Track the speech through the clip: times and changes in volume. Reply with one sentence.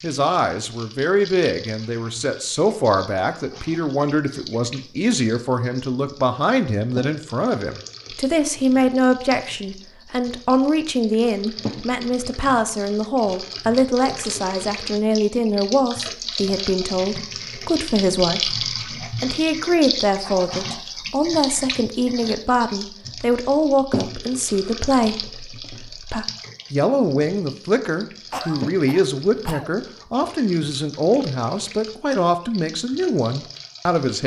The speech can be heard from 0.0 to 34.2 s, at a steady volume.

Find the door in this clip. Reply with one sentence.
You can't hear the door here.